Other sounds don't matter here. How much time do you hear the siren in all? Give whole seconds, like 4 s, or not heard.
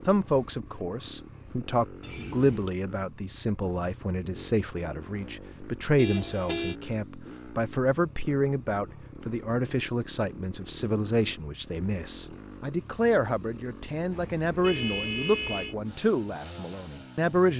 not heard.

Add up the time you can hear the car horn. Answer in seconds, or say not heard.
3 s.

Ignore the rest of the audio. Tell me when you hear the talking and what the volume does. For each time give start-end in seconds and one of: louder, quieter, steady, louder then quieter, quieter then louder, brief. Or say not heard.
0.1-17.5 steady.